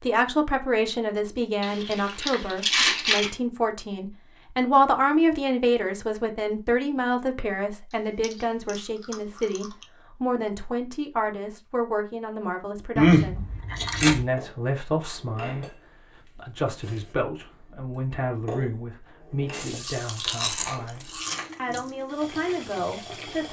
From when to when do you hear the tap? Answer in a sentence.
The tap can be heard from 19.5 to 23.4 s.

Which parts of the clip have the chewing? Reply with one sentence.
The chewing can be heard from 1.6 to 3.3 s, from 8.2 to 9.8 s, from 12.9 to 14.2 s and from 19.8 to 21.4 s.